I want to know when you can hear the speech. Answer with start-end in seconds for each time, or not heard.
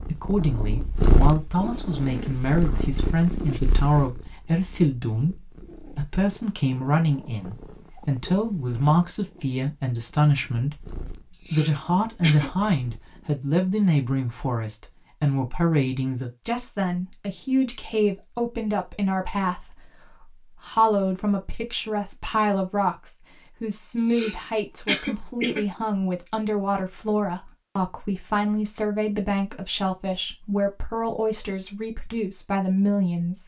0.0-33.4.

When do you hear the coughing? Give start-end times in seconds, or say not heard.
11.3-12.5, 23.9-25.6.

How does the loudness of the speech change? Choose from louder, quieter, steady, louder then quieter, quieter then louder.
steady.